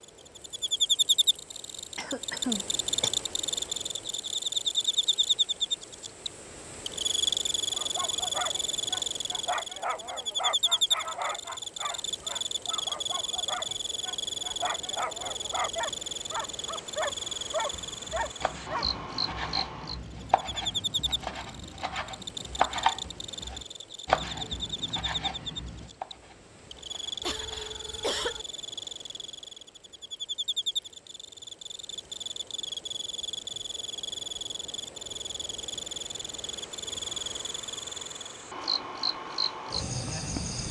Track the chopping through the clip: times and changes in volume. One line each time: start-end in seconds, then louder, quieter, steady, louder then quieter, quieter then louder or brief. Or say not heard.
17.7-27.7 louder then quieter.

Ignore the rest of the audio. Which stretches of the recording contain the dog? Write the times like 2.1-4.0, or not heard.
7.7-19.0.